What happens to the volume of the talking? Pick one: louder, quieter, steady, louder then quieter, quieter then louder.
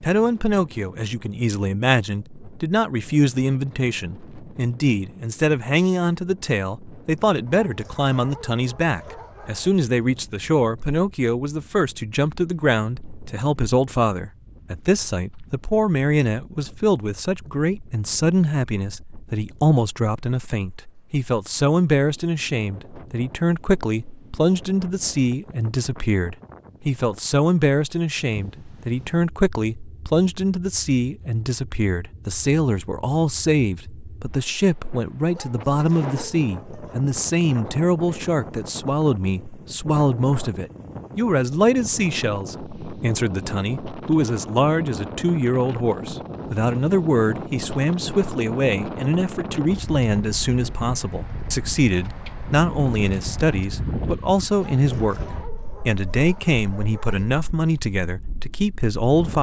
steady.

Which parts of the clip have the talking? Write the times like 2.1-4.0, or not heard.
0.0-59.3.